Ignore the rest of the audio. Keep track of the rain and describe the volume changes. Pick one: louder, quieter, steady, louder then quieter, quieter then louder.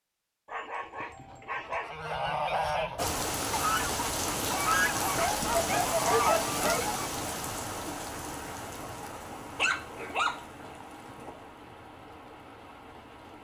quieter.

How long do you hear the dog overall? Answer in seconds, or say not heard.
5 s.